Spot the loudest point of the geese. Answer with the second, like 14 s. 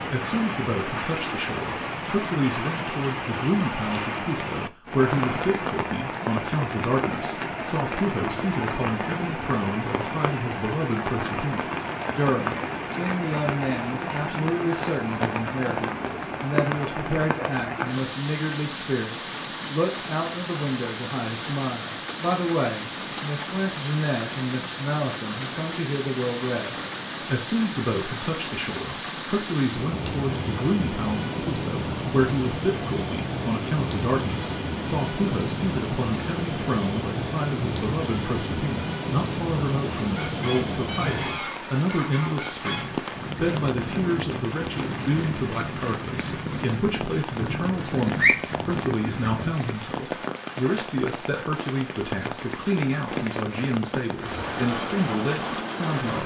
48 s.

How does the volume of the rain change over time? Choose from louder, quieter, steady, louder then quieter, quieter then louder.
steady.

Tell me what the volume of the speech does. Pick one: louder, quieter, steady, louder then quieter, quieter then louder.
steady.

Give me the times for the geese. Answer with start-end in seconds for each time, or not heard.
40.0-49.5.